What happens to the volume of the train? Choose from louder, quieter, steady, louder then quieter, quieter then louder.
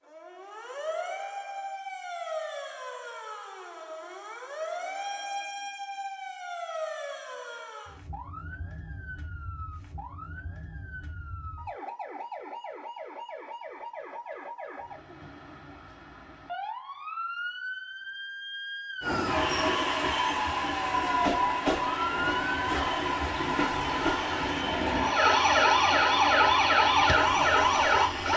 quieter.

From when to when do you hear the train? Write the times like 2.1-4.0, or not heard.
19.0-28.3.